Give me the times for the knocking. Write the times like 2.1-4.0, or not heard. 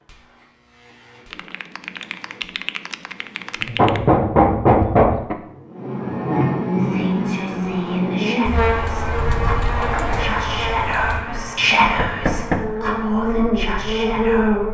3.8-5.3, 11.8-12.6.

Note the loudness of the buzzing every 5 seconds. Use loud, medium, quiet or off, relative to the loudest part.
quiet, loud, loud.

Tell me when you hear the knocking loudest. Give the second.
5 s.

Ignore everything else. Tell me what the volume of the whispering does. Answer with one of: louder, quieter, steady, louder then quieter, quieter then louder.
louder then quieter.